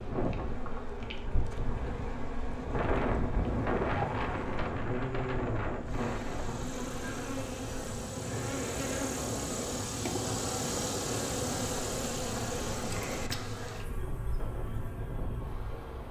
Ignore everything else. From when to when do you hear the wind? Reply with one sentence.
You can hear the wind from 0.0 to 16.0 s.